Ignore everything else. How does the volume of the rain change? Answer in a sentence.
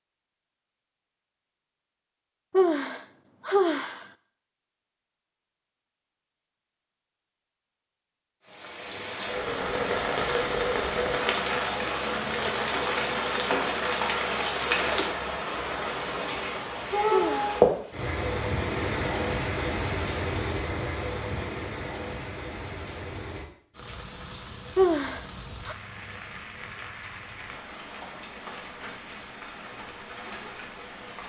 The loudness of the rain goes down.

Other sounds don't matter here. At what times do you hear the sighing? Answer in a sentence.
The sighing can be heard from 2.5 to 4.0 s, from 17.1 to 17.6 s and from 24.8 to 25.8 s.